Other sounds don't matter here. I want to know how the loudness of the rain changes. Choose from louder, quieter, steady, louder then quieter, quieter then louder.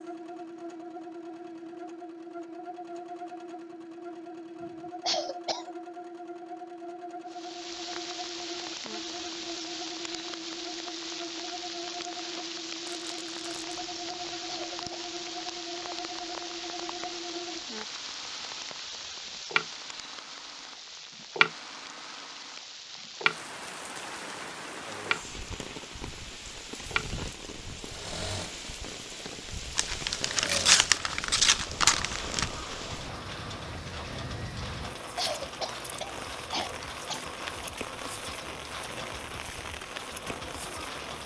steady.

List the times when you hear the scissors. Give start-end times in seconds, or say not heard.
not heard.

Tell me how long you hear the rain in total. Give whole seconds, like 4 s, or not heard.
34 s.